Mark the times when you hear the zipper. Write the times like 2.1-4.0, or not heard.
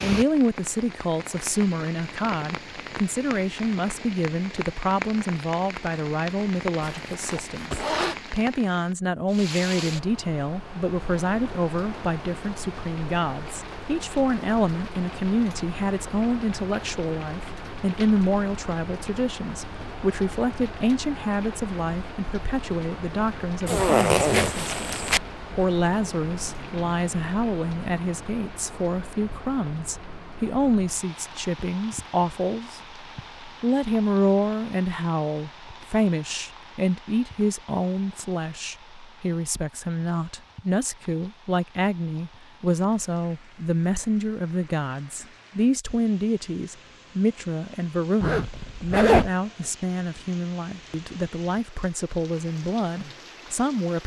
6.8-8.2, 23.6-25.2, 48.2-49.3.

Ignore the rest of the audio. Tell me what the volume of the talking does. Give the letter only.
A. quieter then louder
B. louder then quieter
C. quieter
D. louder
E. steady
E.